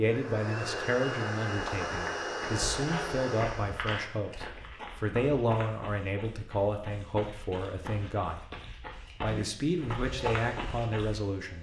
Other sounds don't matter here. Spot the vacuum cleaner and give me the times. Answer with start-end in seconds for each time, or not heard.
0.0-3.9, 9.8-11.5.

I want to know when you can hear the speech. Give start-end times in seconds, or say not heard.
0.0-8.4, 9.2-11.5.